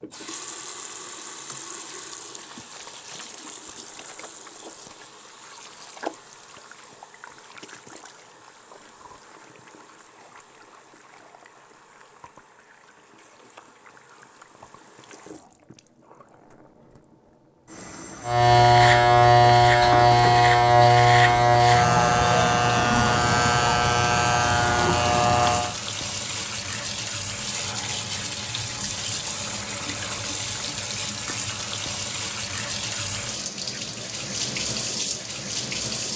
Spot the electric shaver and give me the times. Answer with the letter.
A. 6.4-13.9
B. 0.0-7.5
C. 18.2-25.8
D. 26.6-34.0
C.